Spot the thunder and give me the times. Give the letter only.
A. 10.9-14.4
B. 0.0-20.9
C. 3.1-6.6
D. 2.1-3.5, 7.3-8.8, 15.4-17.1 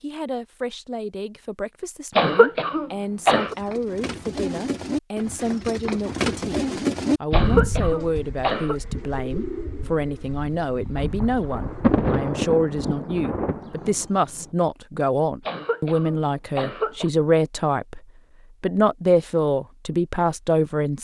A.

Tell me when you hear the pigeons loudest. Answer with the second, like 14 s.
7 s.